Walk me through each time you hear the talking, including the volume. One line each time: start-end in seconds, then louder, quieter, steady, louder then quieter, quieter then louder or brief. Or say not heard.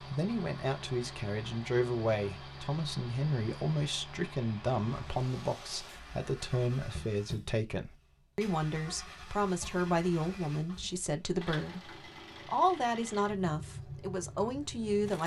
0.0-15.2 steady.